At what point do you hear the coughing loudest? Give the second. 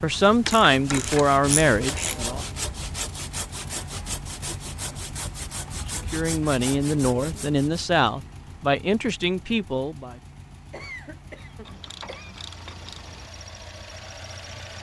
11 s.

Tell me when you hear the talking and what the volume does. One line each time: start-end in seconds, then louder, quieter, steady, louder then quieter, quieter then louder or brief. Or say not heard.
0.0-2.4 brief
5.9-10.2 steady.